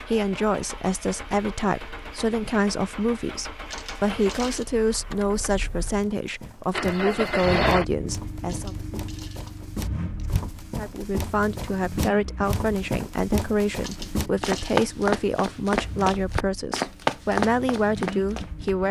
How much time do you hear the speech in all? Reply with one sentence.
The speech can be heard for 17 seconds in total.